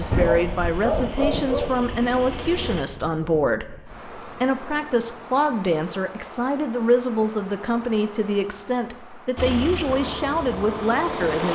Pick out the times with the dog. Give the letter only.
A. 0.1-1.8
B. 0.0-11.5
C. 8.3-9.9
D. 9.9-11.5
A.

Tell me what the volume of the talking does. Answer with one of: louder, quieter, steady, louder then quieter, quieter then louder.
steady.